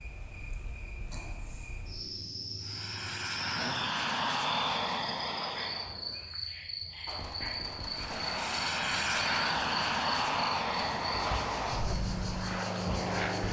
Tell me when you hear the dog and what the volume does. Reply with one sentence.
You can't hear the dog here.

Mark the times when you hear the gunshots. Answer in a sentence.
You can hear the gunshots from 7.0 to 11.9 s.